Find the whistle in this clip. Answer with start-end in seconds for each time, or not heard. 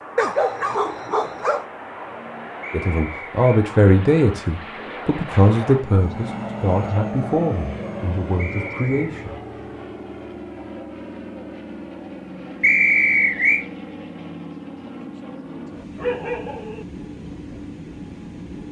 2.6-3.6, 8.3-9.1, 12.6-13.7.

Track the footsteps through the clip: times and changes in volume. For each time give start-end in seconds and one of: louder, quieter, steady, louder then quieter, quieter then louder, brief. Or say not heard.
not heard.